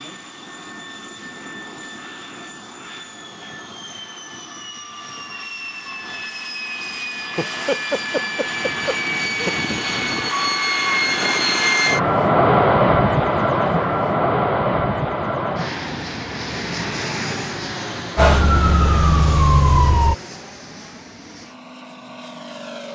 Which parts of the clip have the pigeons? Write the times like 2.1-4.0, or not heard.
not heard.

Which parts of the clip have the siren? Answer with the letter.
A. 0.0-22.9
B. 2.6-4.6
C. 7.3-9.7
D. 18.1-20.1
D.